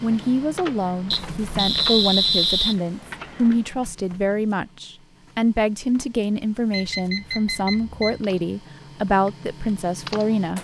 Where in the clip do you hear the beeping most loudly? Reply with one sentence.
The loudest moment of the beeping is at 2 seconds.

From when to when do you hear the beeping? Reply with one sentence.
The beeping can be heard from 1.1 to 2.8 s and from 6.7 to 8.2 s.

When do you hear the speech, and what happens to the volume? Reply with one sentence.
You can hear the speech from 0.0 to 10.5 s, at a steady volume.